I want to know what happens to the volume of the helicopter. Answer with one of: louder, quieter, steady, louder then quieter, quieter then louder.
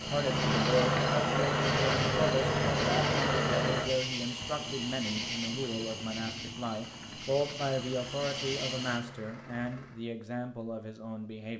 quieter.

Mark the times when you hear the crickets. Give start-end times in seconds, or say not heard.
0.0-9.0.